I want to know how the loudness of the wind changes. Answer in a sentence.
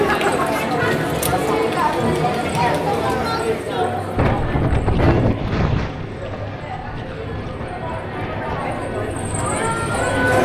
The volume of the wind goes down.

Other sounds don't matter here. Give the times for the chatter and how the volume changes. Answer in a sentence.
You can hear the chatter from 0.0 to 10.3 s, getting quieter then louder.